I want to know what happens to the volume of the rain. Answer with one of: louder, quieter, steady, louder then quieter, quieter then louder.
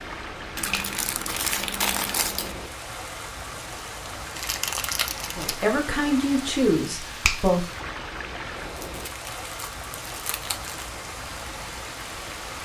steady.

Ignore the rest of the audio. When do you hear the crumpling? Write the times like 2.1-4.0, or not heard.
0.6-2.5, 4.3-5.7, 8.8-10.9.